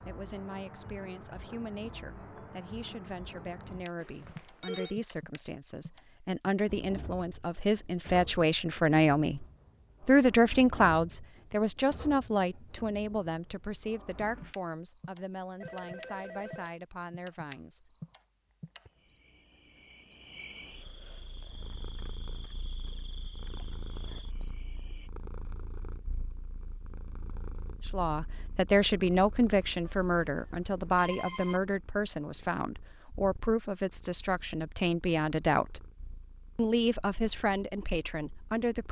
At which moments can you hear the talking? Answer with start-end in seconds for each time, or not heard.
0.1-9.4, 10.1-17.9, 27.9-35.9, 36.5-38.8.